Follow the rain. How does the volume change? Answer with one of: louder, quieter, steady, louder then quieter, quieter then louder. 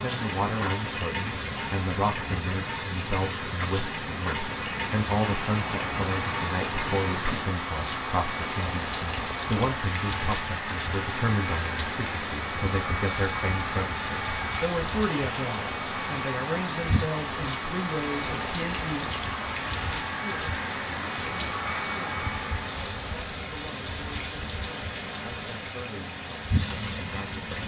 steady.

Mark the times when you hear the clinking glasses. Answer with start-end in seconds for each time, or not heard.
not heard.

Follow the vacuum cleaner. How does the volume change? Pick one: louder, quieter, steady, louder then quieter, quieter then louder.
steady.